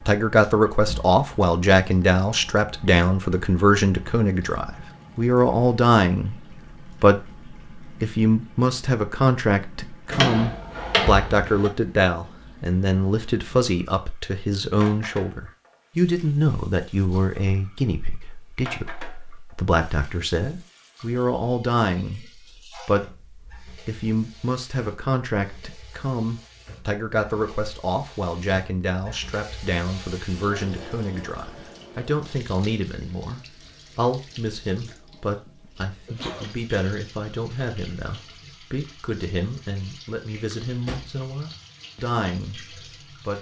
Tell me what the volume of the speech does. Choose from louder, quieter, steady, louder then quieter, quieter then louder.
quieter.